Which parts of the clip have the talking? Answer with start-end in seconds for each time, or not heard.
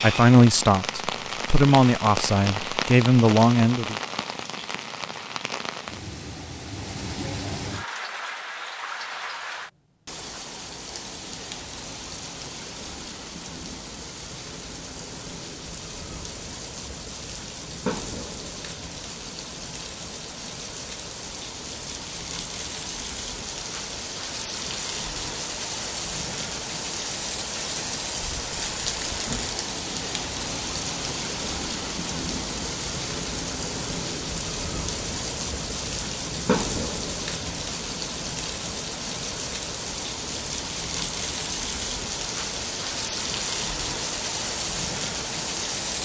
0.0-4.0.